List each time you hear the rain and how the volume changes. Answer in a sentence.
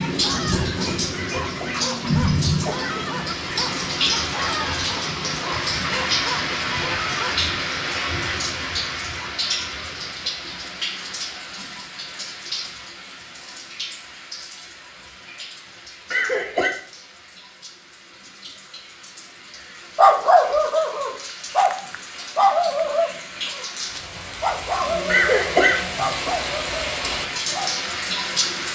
You can hear the rain from 0.0 to 28.7 s, getting quieter then louder.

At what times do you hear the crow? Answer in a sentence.
You can't hear the crow here.